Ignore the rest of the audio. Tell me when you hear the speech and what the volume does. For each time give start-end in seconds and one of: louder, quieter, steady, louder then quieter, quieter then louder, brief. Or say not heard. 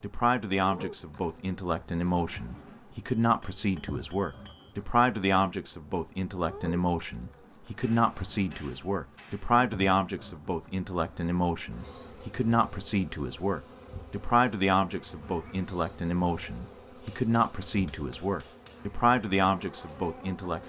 0.0-20.6 steady.